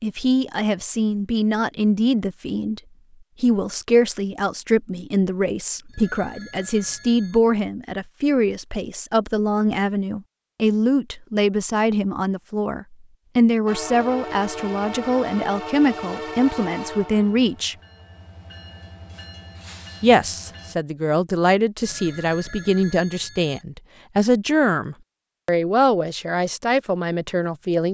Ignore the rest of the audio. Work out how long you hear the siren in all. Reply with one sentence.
The siren can't be heard in this clip.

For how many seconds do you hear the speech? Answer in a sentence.
You can hear the speech for 25 seconds altogether.